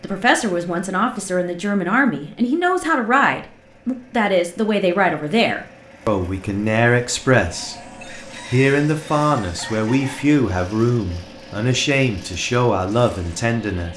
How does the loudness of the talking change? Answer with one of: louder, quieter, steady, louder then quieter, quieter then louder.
steady.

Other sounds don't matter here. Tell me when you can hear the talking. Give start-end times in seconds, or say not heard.
0.0-7.8, 8.5-13.9.